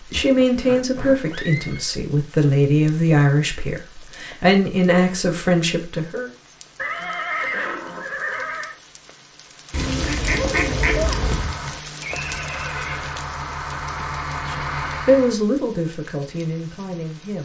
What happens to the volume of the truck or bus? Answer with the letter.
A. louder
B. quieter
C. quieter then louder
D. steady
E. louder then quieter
A.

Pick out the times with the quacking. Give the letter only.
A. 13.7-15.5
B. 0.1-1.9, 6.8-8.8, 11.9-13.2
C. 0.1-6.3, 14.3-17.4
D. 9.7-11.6
D.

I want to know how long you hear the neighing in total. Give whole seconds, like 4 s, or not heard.
5 s.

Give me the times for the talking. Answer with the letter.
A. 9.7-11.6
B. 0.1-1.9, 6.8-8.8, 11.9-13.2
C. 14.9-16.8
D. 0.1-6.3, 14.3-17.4
D.